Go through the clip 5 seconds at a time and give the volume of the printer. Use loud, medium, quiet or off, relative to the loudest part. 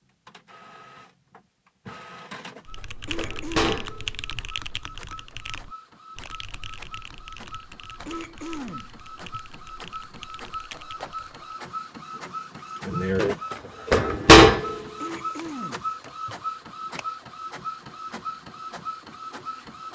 quiet, quiet, loud, quiet.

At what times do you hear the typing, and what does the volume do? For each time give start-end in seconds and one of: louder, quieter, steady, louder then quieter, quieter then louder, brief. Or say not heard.
2.6-11.5 quieter.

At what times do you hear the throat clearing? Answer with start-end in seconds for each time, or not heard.
3.0-4.5, 8.1-9.4, 15.0-16.4.